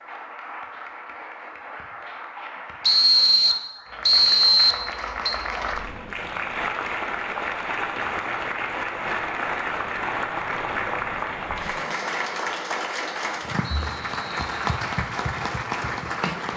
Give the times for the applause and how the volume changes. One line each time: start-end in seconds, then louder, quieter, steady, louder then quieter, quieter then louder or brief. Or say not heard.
0.0-16.5 louder.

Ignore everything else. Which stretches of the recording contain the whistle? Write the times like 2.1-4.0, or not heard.
2.8-5.3, 13.6-14.6.